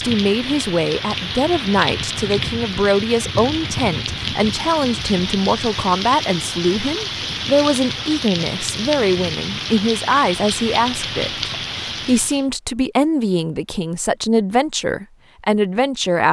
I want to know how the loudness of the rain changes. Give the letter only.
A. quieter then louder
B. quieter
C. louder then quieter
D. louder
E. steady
E.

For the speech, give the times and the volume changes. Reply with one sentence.
You can hear the speech from 0.0 to 16.2 s, at a steady volume.